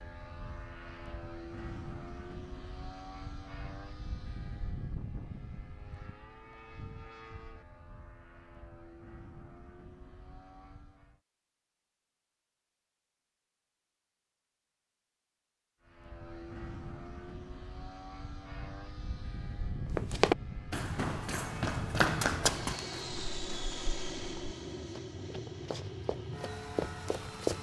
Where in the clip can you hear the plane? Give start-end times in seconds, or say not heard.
0.0-11.2, 15.8-27.5.